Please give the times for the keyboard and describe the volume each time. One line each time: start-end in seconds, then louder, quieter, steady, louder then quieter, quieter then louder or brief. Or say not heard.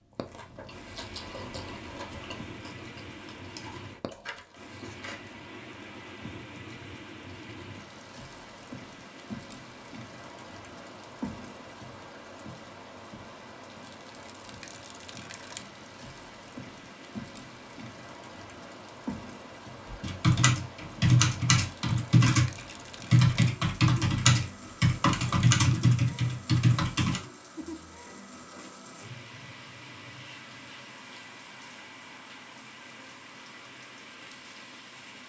19.9-27.2 steady.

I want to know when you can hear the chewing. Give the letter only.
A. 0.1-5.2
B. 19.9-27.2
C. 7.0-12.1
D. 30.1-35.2
A.